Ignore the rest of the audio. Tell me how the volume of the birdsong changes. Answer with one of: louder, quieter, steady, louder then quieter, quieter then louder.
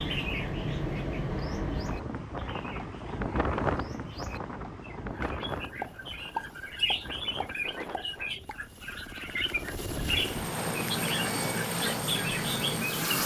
louder.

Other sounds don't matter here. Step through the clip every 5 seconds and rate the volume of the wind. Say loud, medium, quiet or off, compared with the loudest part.
loud, medium, off.